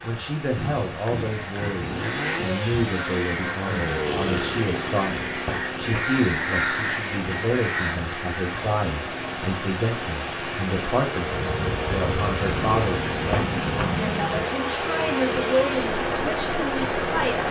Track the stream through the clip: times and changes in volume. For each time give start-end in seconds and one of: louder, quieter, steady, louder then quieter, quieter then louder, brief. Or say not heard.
0.0-17.4 louder.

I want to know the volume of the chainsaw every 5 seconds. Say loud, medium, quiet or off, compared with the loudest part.
loud, medium, loud, loud.